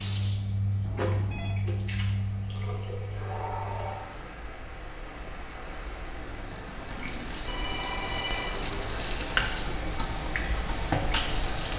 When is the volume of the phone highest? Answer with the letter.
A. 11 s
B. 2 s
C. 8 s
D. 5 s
C.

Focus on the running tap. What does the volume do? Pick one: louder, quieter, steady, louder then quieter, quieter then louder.
quieter then louder.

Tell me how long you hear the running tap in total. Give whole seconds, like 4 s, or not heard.
12 s.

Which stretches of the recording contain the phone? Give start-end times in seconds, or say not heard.
0.8-1.6, 7.5-9.2.